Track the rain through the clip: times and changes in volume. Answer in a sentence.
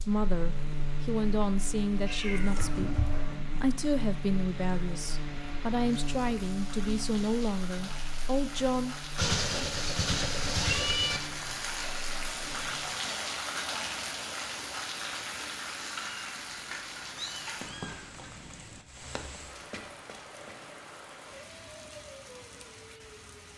You can hear the rain from 0.0 to 23.5 s, getting louder then quieter.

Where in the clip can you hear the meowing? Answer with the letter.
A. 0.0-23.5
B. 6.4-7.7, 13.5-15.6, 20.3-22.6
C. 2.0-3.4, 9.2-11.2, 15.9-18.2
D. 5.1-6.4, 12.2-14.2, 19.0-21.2
C.